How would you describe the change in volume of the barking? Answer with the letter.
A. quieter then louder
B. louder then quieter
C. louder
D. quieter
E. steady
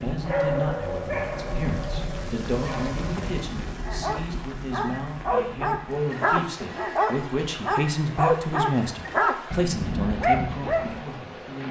C.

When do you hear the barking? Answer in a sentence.
You can hear the barking from 0.2 to 11.1 s.